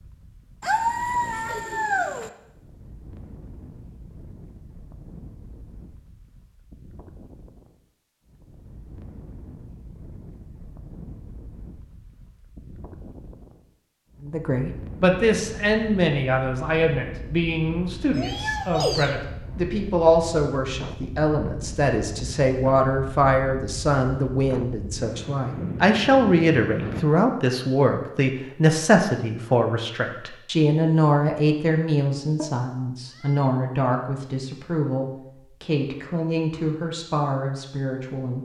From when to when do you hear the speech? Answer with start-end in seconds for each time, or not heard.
14.2-38.4.